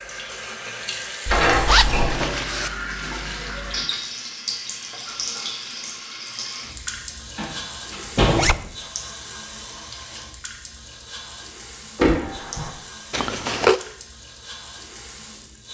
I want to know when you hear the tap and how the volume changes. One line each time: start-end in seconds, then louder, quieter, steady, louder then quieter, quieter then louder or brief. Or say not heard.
0.0-15.6 quieter.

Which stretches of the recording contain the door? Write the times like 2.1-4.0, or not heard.
1.2-2.1, 7.3-8.6, 11.9-12.7.